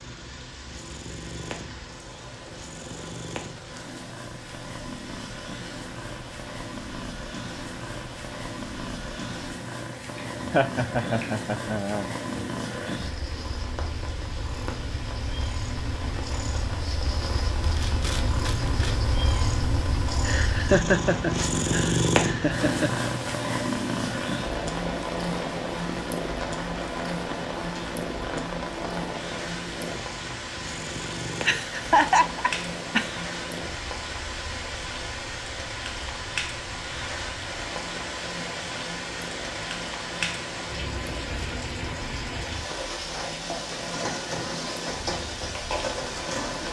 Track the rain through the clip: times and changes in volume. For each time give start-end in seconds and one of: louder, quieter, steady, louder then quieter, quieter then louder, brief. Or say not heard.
0.0-46.6 louder.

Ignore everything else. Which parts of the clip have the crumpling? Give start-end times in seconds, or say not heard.
17.6-19.1.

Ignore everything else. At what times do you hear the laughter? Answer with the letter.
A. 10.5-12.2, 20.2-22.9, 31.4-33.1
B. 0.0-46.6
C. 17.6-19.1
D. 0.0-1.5
A.